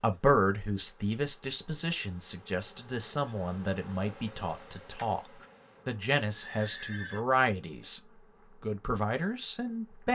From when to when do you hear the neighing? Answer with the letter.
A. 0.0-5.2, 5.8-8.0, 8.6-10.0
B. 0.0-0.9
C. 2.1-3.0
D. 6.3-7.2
D.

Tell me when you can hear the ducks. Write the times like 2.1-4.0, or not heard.
not heard.